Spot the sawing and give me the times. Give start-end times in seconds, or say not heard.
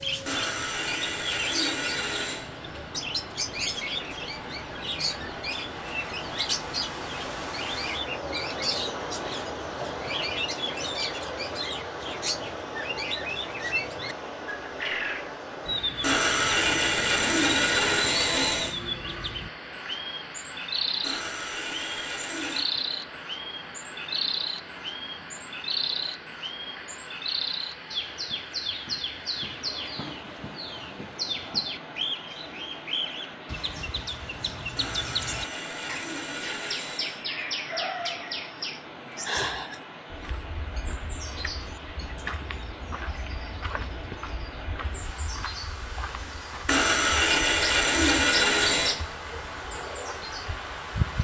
0.2-2.5, 16.0-18.8, 21.0-22.6, 34.8-37.2, 46.6-49.0.